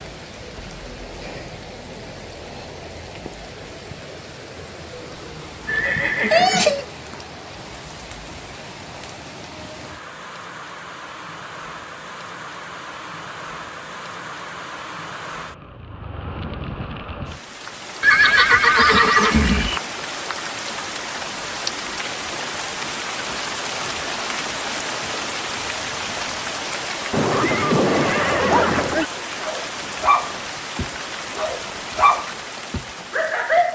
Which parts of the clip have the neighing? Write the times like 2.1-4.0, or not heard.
5.7-6.8, 18.0-19.8, 27.1-29.1.